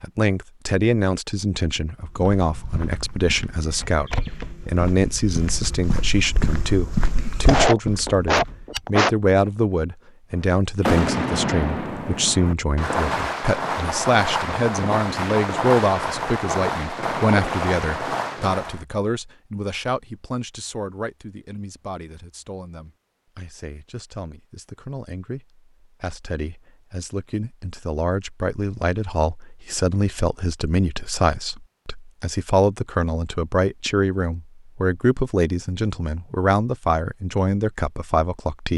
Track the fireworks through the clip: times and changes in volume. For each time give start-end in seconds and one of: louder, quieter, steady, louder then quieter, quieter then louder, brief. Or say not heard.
10.3-18.8 steady.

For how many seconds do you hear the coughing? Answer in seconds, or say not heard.
2 s.